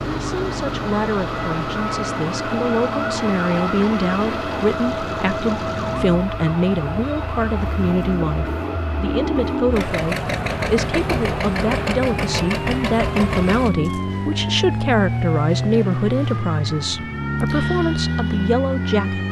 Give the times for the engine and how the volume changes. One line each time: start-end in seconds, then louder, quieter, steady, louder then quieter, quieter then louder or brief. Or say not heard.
0.0-19.2 louder.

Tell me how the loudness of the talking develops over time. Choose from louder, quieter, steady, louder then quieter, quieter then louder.
steady.